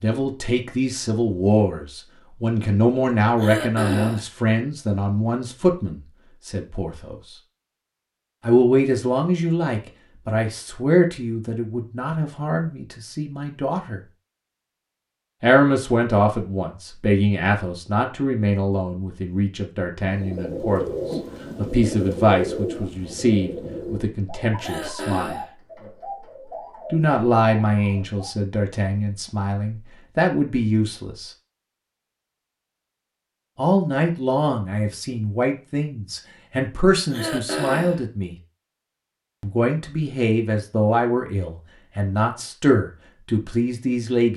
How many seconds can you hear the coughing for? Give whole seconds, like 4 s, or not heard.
3 s.